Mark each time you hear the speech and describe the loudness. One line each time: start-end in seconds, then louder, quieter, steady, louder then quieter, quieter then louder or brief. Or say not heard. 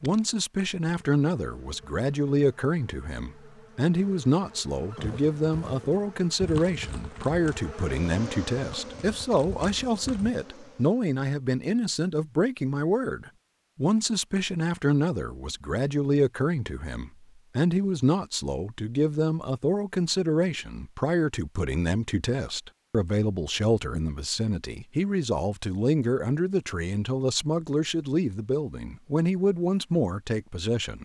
0.0-31.0 steady.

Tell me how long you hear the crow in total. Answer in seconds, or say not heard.
not heard.